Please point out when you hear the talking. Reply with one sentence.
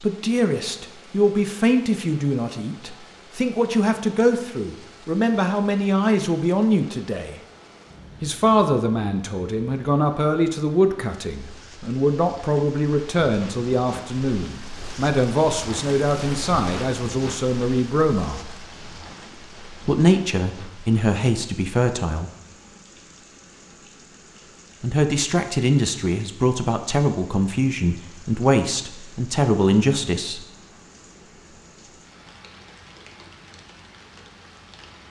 The talking can be heard from 0.0 to 7.3 s, from 8.2 to 18.4 s, from 19.8 to 22.3 s and from 24.8 to 30.4 s.